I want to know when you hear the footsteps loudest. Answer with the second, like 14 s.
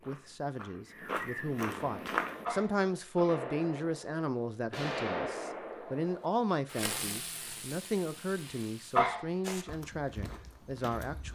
2 s.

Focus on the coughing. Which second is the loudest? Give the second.
9 s.